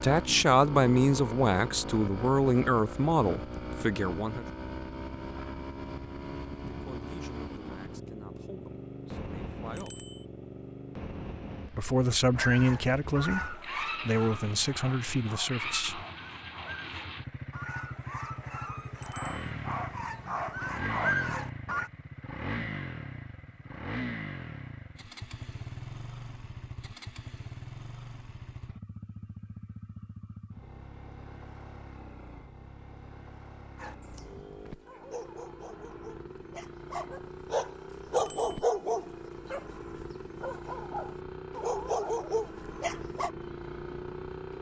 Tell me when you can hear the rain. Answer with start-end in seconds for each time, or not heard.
not heard.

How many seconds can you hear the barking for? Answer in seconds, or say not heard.
19 s.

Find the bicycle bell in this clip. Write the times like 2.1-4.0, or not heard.
9.8-10.2, 19.0-19.5, 38.1-38.6.